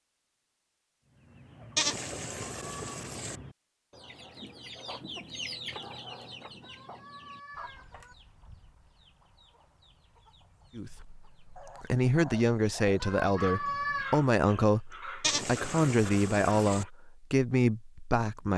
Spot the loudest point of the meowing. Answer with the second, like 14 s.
14 s.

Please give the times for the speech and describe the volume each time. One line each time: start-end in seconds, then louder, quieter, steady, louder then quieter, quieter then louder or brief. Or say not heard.
10.8-18.5 steady.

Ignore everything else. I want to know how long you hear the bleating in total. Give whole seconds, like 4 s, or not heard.
3 s.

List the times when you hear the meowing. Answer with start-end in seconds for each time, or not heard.
2.5-2.9, 6.6-8.2, 13.0-14.2.